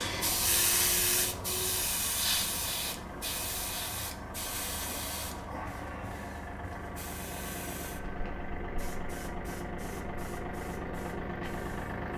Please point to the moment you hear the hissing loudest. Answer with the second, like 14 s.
1 s.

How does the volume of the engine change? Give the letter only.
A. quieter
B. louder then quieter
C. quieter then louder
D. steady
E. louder
E.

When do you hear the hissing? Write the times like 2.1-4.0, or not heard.
0.0-12.1.